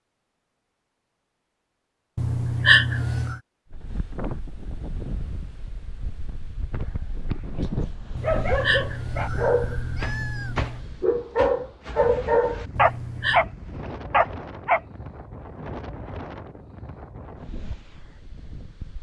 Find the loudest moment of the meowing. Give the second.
3 s.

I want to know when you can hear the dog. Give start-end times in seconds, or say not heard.
8.2-13.4, 14.1-14.8.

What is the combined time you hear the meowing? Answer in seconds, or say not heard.
5 s.